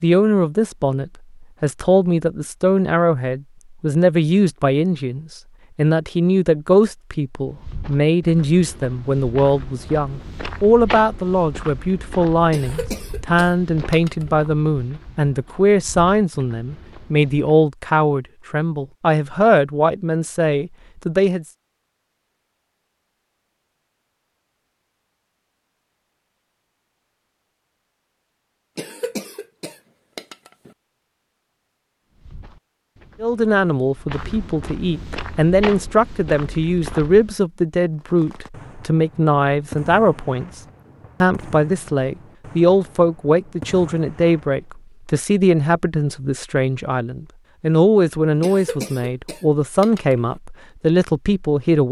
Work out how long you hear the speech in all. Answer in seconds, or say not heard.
39 s.